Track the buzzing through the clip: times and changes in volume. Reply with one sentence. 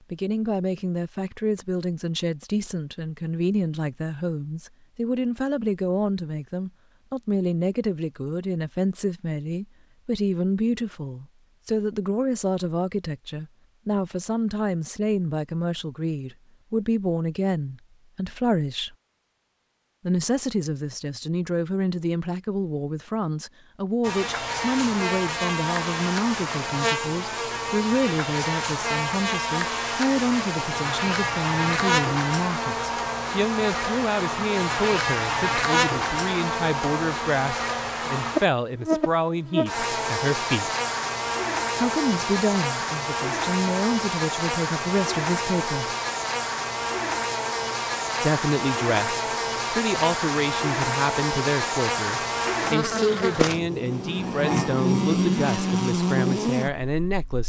The buzzing can be heard from 24.0 to 57.4 s, at a steady volume.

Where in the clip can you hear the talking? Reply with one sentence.
You can hear the talking from 0.1 to 18.9 s, from 20.1 to 40.7 s, from 41.8 to 45.9 s and from 48.2 to 57.4 s.